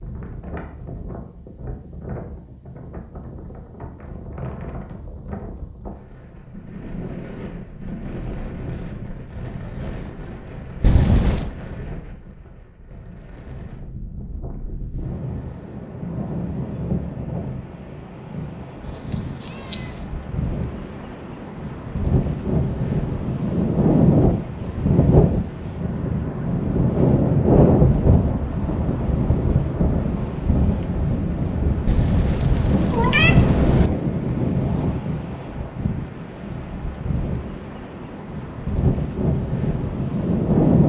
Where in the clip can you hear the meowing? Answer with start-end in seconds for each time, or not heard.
10.8-11.5, 18.8-20.1, 31.9-33.9.